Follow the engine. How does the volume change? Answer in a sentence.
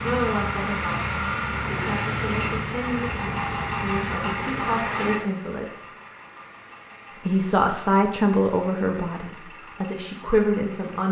The volume of the engine goes down.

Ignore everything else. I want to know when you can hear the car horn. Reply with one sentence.
The car horn can't be heard in this clip.